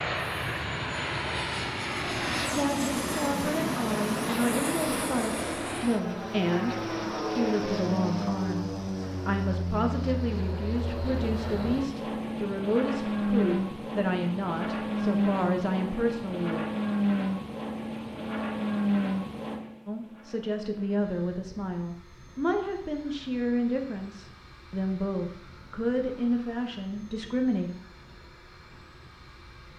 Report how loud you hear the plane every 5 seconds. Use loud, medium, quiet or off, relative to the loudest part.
loud, loud, loud, loud, quiet, quiet.